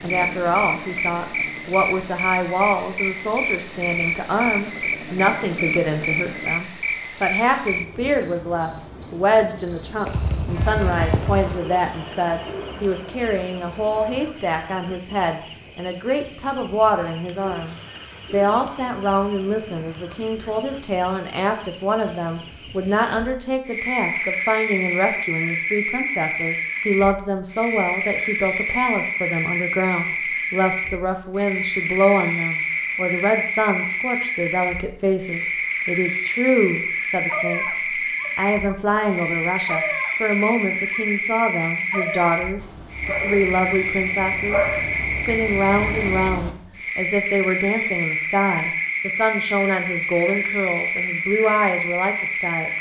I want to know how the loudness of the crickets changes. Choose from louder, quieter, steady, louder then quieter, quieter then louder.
steady.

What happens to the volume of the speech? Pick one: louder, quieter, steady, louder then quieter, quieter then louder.
steady.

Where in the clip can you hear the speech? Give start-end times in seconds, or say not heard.
0.0-37.6, 38.4-52.7.